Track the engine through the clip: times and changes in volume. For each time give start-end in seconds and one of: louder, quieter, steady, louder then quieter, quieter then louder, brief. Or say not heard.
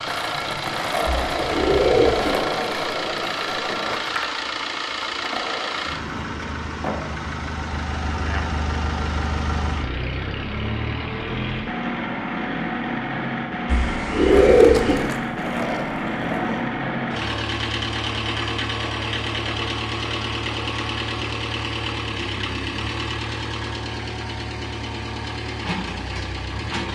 0.0-26.9 steady.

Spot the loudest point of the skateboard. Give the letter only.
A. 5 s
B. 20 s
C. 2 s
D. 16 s
C.